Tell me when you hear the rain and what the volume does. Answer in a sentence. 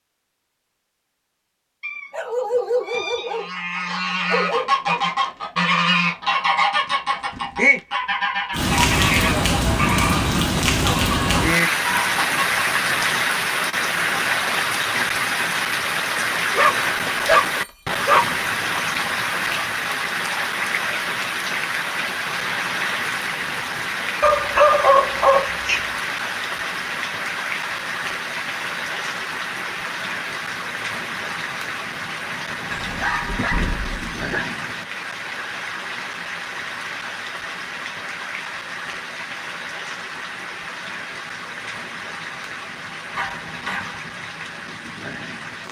You can hear the rain from 8.5 to 45.6 s, getting quieter.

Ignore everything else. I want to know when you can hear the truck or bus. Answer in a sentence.
The truck or bus can't be heard in this clip.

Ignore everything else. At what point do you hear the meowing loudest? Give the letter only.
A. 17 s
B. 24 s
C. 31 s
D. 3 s
D.